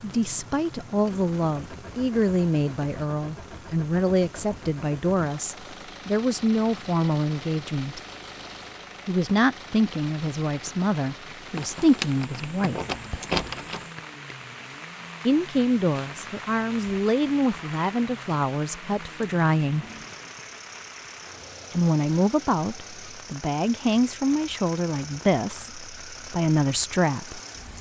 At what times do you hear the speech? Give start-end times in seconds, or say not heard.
0.0-8.0, 9.1-12.8, 15.2-19.9, 21.7-27.4.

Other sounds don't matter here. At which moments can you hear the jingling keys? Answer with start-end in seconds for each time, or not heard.
11.6-13.9.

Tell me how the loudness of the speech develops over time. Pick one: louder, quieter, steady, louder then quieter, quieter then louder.
steady.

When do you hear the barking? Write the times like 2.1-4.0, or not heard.
not heard.